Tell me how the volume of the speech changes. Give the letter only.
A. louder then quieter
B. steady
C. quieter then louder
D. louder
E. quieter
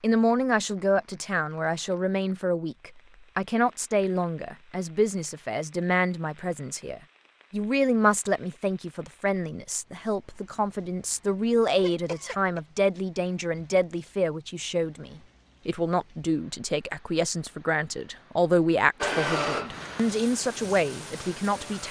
B.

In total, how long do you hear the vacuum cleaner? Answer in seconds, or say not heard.
3 s.